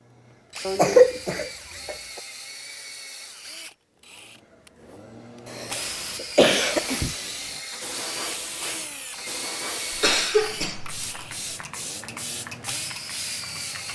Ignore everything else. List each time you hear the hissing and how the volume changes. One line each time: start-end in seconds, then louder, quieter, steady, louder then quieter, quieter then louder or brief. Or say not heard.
5.8-13.8 steady.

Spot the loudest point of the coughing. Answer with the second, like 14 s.
1 s.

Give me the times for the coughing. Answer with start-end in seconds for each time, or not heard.
0.7-1.9, 5.5-7.2, 9.9-11.1.